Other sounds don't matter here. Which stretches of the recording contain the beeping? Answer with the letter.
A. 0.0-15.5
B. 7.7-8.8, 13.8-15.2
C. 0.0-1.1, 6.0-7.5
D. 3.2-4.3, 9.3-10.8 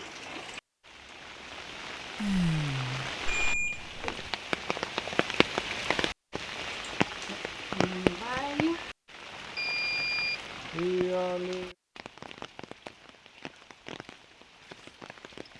D.